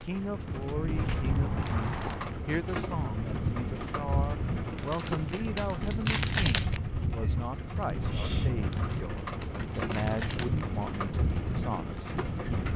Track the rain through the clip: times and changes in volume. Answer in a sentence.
The rain can be heard from 0.0 to 12.7 s, at a steady volume.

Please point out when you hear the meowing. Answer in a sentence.
You can hear the meowing from 1.0 to 2.4 s and from 7.2 to 8.6 s.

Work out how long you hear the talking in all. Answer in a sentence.
You can hear the talking for 13 seconds altogether.